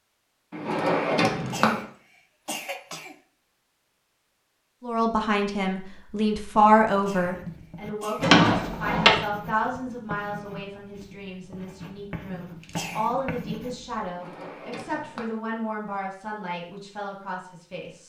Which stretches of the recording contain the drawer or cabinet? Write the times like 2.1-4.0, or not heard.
0.5-1.9, 8.2-9.2, 14.1-15.4.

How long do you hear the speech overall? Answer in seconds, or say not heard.
13 s.